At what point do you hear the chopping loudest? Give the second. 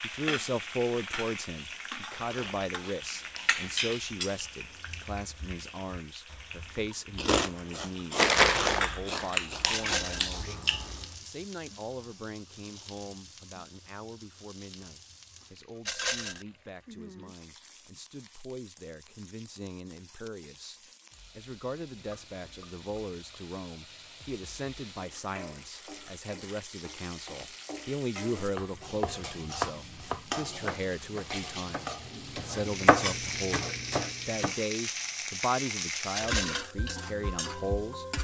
33 s.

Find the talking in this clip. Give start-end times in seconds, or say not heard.
0.0-38.0.